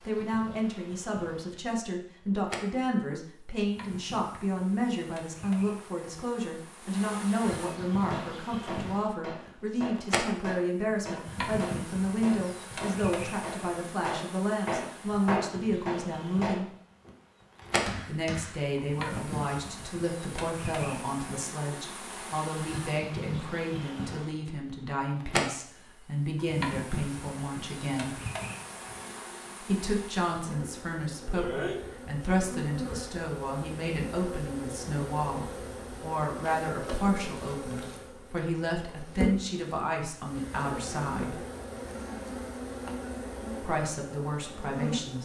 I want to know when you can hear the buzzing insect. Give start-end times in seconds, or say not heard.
0.0-45.2.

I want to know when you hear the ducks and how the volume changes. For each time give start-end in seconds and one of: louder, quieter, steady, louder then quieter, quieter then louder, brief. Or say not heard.
not heard.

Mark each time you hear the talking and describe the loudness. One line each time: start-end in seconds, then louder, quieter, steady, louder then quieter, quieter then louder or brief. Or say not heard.
0.1-16.7 steady
18.1-28.2 steady
29.6-41.4 steady
43.6-45.2 brief.